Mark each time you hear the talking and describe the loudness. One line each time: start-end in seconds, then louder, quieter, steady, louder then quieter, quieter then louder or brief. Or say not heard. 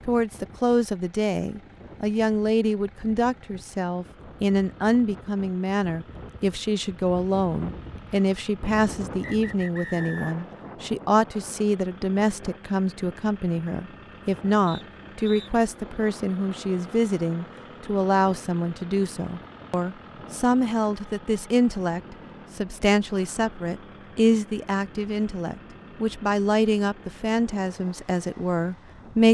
0.1-29.2 steady.